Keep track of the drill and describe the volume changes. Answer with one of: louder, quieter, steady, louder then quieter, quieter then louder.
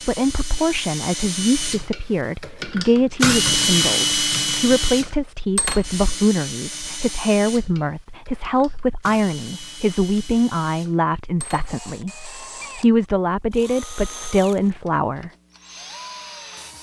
quieter.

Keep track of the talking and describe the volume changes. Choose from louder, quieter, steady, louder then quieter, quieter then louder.
steady.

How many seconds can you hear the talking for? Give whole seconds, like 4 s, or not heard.
15 s.